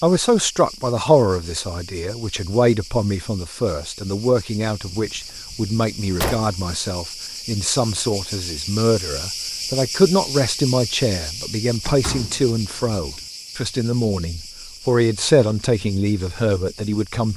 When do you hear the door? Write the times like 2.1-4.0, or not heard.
4.8-6.5, 11.8-13.2.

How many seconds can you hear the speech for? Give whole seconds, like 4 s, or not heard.
17 s.